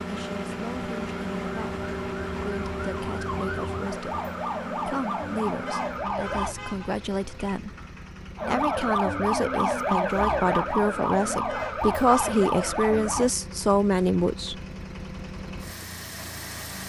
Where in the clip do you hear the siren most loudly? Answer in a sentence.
The loudest moment of the siren is at 10 seconds.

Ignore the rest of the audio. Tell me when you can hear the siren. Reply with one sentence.
You can hear the siren from 0.0 to 6.5 s and from 8.3 to 13.3 s.